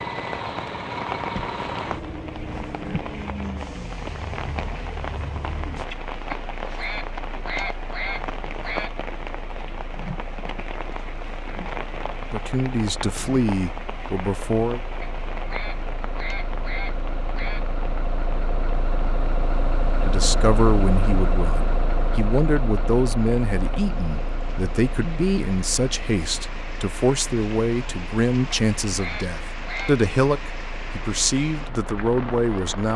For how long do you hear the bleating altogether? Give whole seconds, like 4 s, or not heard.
not heard.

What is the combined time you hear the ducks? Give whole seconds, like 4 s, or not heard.
7 s.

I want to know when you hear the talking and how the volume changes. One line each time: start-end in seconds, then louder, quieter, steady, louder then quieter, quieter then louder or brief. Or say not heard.
12.3-14.8 brief
20.1-32.9 steady.